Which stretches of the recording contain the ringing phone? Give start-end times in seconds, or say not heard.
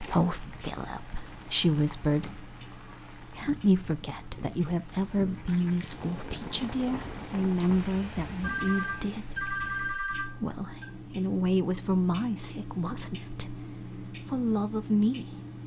8.4-10.8.